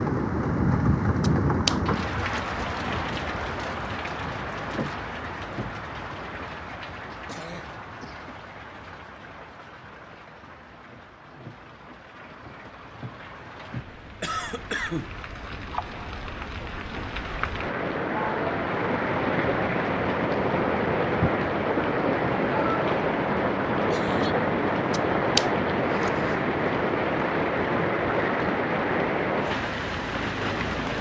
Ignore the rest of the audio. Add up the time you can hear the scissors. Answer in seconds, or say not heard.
3 s.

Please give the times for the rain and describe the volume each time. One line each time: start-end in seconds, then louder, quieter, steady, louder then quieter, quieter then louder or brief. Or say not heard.
0.0-30.9 quieter then louder.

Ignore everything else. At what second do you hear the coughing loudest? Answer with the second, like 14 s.
15 s.